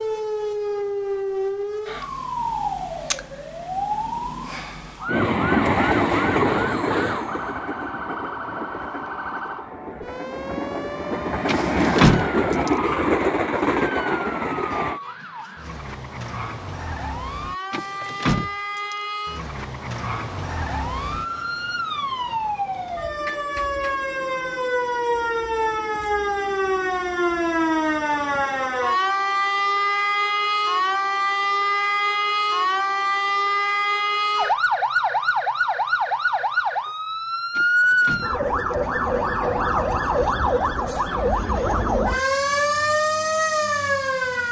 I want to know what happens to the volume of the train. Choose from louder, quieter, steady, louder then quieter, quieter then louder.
quieter then louder.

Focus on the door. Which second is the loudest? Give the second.
12 s.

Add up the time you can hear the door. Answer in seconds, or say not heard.
4 s.